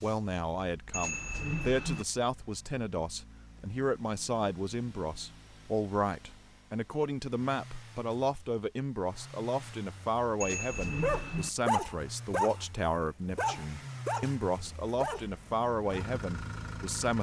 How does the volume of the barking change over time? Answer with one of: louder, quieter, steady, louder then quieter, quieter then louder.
quieter.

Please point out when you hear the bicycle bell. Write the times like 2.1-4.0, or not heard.
0.9-2.0, 10.4-11.5.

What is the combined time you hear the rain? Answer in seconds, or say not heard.
not heard.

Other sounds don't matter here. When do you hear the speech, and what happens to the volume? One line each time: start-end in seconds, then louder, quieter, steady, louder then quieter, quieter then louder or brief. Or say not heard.
0.0-17.1 steady.